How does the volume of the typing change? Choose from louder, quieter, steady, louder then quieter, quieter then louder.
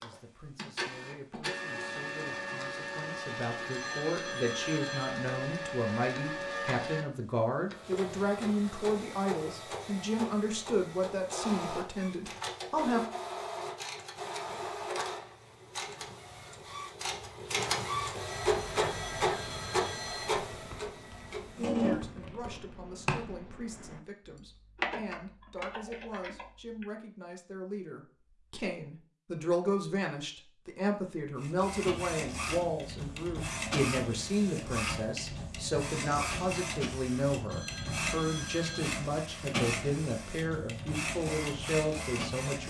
louder then quieter.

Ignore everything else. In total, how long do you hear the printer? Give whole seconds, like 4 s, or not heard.
33 s.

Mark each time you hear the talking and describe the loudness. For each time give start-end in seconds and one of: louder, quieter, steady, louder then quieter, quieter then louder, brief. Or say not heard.
0.0-13.1 louder
21.8-42.6 louder.